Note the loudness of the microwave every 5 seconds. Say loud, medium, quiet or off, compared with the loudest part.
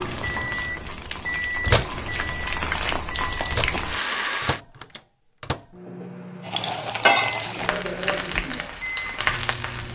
loud, medium.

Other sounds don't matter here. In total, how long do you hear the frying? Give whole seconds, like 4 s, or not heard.
8 s.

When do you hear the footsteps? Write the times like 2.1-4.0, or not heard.
not heard.